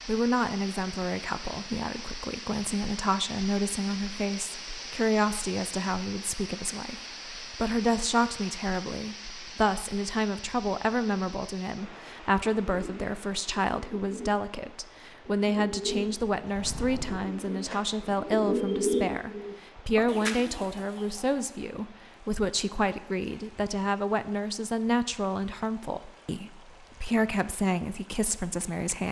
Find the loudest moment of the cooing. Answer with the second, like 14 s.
19 s.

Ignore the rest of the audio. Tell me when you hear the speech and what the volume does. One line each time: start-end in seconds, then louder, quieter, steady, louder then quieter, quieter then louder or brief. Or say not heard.
0.1-29.0 steady.